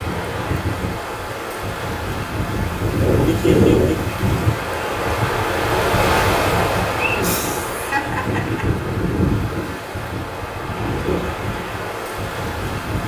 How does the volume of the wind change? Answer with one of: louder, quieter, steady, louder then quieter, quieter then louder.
louder then quieter.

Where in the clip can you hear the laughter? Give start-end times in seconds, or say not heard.
3.2-4.1, 7.0-8.7.